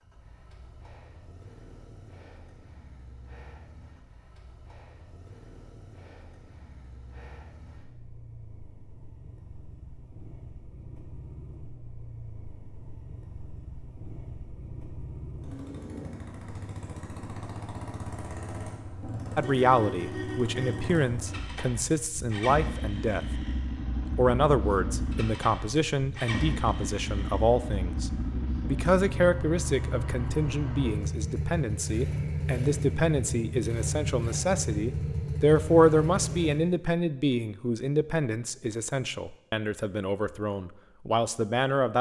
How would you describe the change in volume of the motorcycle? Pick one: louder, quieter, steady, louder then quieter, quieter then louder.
louder.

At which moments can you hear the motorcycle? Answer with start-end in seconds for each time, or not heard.
0.0-36.6.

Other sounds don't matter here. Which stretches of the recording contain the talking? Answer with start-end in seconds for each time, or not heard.
19.4-23.2, 24.1-41.9.